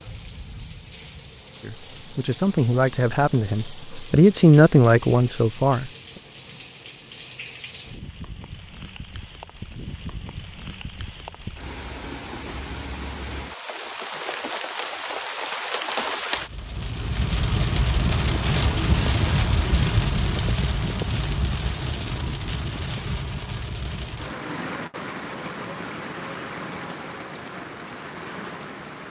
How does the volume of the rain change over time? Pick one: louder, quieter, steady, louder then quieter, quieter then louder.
louder then quieter.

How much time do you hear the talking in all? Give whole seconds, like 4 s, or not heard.
4 s.